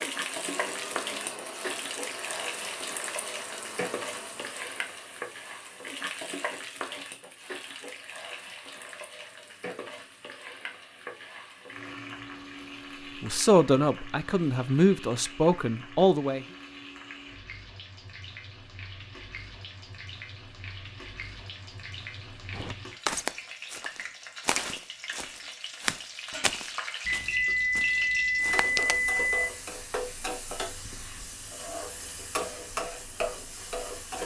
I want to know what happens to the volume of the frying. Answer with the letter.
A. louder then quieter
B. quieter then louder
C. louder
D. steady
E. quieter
B.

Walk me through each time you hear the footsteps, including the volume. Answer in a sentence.
You can hear the footsteps from 22.5 to 28.9 s, getting quieter.